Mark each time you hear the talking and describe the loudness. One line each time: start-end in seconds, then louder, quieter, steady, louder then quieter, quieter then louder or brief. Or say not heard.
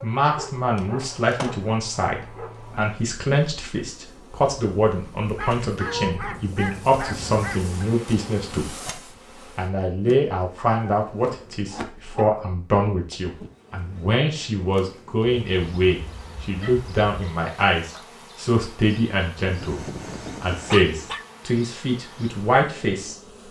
0.0-8.9 steady
9.6-19.8 steady
20.4-23.1 brief.